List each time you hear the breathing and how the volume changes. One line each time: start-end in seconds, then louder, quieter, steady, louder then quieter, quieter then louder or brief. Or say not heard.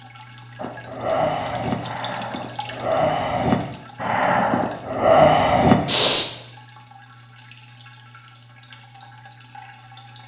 0.6-6.2 quieter then louder.